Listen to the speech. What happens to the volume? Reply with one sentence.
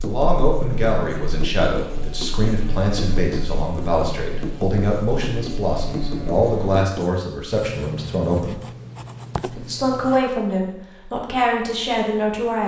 The volume of the speech stays about the same.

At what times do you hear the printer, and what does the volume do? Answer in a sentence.
The printer can't be heard in this clip.